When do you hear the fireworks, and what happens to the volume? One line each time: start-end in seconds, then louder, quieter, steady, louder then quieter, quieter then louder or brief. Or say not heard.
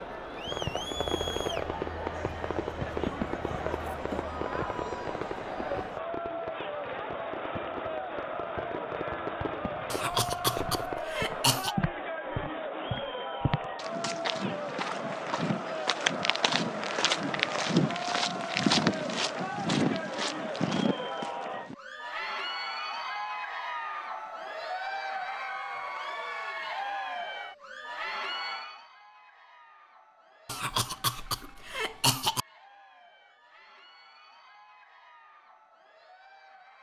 0.5-11.0 quieter then louder.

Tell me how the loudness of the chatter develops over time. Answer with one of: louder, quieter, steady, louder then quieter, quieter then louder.
quieter.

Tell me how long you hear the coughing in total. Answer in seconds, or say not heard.
4 s.